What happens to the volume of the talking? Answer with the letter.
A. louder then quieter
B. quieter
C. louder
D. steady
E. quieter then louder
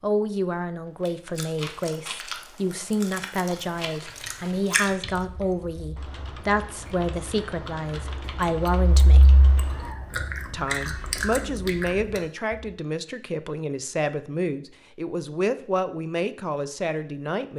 D.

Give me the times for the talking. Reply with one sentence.
The talking can be heard from 0.0 to 9.3 s and from 10.5 to 17.5 s.